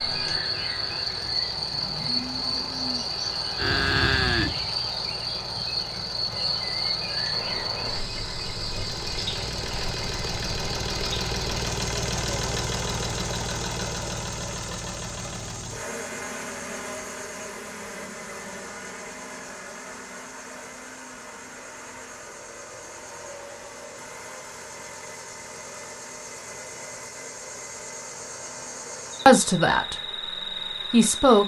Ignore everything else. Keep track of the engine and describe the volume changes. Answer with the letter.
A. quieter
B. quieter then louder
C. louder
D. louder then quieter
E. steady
D.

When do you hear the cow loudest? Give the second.
4 s.